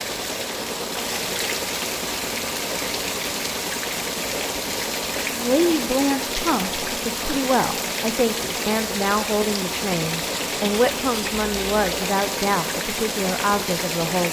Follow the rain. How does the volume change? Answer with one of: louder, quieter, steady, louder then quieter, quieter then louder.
steady.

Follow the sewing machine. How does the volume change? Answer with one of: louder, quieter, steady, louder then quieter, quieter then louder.
steady.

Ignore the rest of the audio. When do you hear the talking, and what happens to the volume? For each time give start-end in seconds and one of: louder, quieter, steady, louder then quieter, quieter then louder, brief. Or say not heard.
5.3-14.2 steady.